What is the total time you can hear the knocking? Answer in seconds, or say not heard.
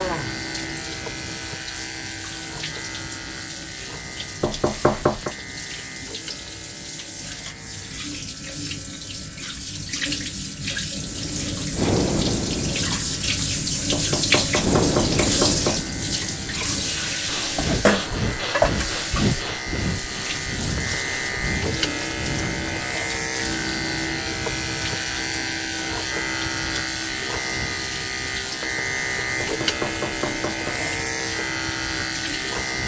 4 s.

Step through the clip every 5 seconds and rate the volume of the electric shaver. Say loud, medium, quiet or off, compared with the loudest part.
medium, quiet, quiet, medium, loud, loud, loud.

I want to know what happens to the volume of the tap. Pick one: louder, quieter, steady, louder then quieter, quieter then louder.
louder then quieter.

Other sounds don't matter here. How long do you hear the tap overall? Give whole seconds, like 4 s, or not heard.
33 s.